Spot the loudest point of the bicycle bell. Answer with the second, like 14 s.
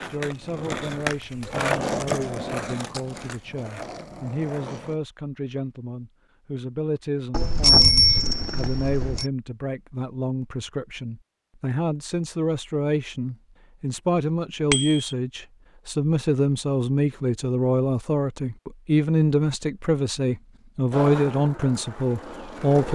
8 s.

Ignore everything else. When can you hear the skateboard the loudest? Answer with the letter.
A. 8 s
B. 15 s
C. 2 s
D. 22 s
C.